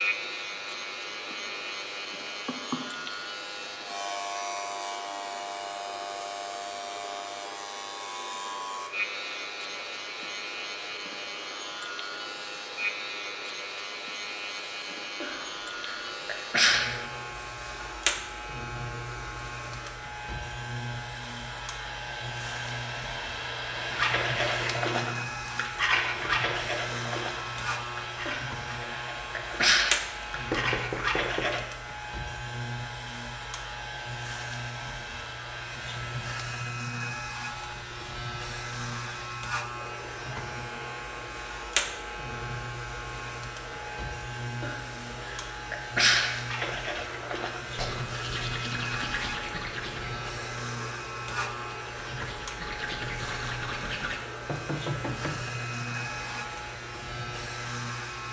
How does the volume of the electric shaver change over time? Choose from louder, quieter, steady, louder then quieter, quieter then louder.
steady.